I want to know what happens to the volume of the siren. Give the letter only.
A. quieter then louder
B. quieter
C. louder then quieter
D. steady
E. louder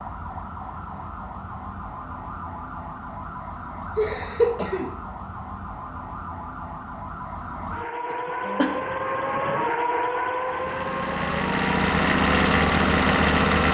E.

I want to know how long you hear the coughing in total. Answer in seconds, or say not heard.
2 s.